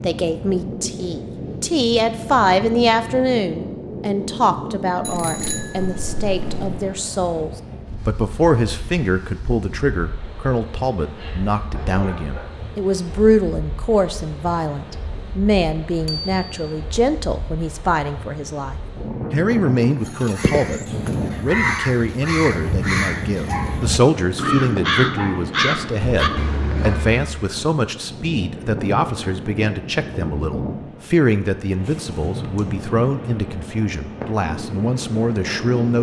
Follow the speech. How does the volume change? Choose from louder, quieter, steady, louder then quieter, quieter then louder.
steady.